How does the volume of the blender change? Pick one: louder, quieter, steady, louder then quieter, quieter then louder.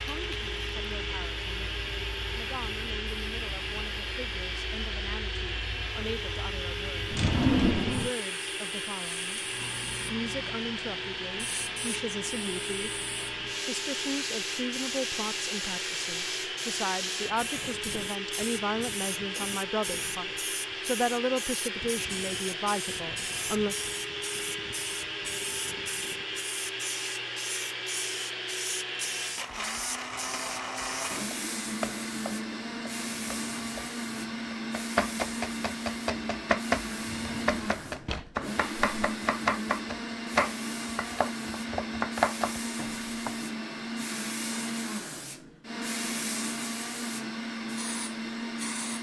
steady.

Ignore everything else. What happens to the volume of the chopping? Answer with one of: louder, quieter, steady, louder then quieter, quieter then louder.
louder.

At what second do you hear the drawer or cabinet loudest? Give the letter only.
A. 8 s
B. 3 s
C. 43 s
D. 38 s
A.